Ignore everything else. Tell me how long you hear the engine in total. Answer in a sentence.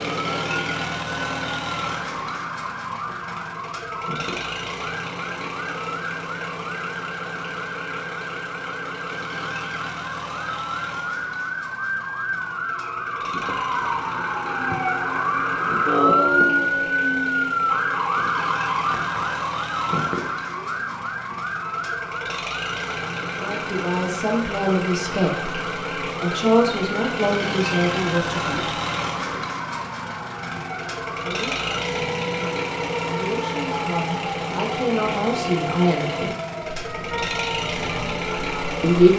The engine can be heard for 39 seconds in total.